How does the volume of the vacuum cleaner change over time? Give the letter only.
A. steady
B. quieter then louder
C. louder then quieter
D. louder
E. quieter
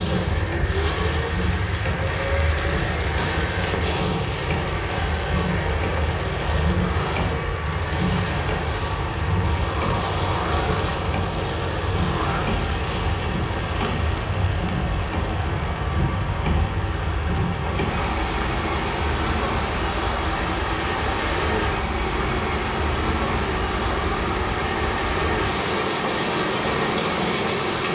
A.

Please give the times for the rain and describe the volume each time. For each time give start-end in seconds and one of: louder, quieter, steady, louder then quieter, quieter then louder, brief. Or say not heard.
0.0-27.9 steady.